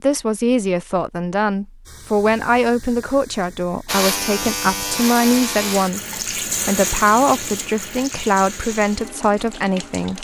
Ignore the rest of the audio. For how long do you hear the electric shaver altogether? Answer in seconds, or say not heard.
2 s.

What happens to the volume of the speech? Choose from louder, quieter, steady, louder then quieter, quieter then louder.
steady.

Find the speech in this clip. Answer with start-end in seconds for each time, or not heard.
0.0-10.1.